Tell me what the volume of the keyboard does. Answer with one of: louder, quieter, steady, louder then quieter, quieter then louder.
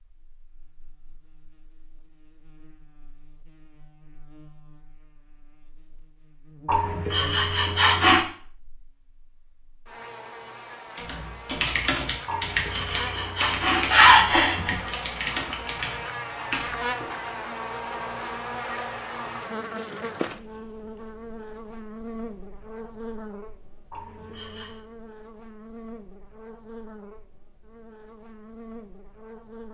quieter.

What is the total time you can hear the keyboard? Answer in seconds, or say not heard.
6 s.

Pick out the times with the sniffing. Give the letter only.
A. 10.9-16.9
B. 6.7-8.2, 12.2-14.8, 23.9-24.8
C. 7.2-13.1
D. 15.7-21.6
B.